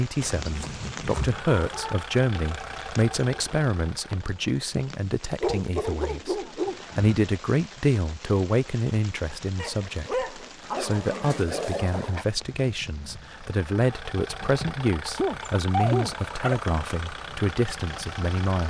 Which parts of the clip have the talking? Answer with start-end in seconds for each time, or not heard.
0.0-18.6.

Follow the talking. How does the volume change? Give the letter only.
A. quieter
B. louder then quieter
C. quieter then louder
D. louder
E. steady
E.